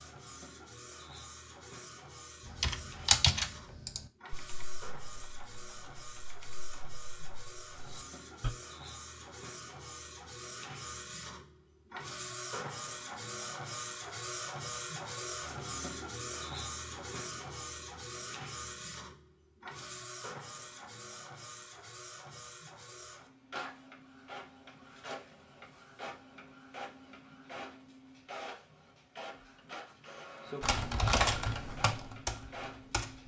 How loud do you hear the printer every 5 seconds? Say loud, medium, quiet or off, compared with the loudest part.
medium, medium, loud, loud, medium, medium, medium.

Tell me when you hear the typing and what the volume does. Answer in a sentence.
The typing can be heard from 2.5 to 8.5 s, getting quieter then louder; and briefly from 30.6 to 33.2 s.